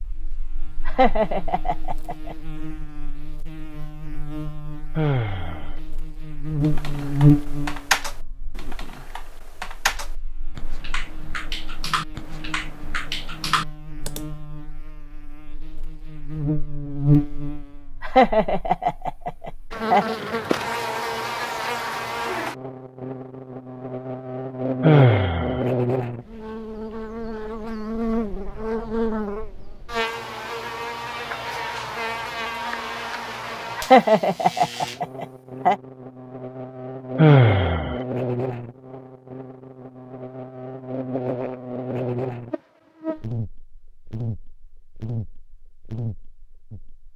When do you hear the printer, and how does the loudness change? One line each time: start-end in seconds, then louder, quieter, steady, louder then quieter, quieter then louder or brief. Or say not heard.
not heard.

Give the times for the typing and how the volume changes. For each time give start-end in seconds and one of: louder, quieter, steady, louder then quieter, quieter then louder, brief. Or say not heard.
6.6-14.3 quieter then louder.